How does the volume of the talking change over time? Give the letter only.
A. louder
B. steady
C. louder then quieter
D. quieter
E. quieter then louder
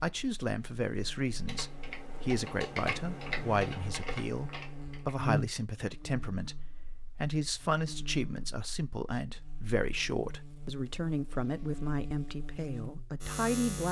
B.